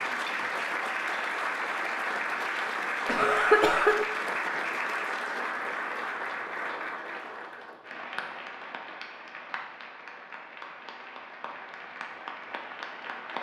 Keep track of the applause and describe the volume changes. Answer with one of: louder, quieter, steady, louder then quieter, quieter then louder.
quieter.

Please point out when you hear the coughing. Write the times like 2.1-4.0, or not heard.
3.0-4.0.